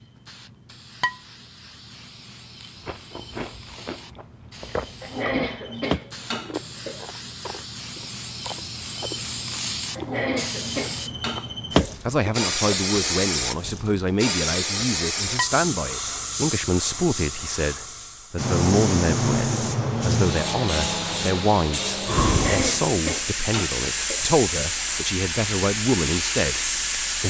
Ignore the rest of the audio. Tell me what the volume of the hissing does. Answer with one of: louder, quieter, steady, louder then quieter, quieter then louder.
louder.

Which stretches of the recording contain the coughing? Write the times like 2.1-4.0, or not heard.
5.0-7.0, 9.9-11.9, 22.2-24.2.